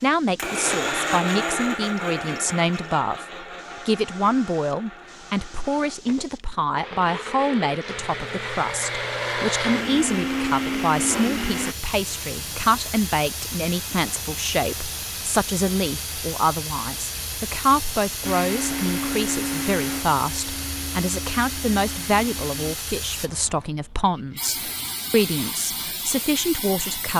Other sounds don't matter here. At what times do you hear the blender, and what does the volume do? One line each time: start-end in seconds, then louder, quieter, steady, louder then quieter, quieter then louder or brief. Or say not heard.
0.3-11.8 quieter then louder
18.2-22.8 quieter.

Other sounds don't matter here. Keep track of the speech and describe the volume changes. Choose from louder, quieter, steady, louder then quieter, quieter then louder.
steady.